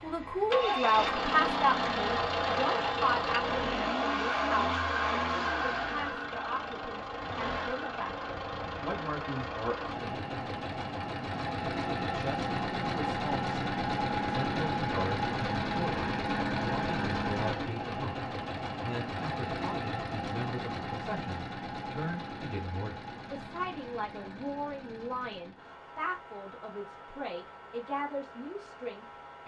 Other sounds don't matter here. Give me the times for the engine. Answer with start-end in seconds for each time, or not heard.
0.0-29.4.